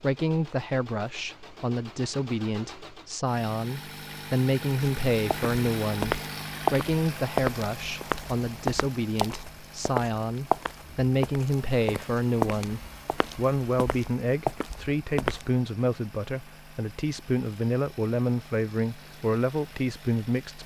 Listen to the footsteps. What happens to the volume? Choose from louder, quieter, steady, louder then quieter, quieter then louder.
quieter.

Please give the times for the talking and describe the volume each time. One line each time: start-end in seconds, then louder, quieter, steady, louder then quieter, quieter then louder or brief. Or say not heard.
0.0-20.6 steady.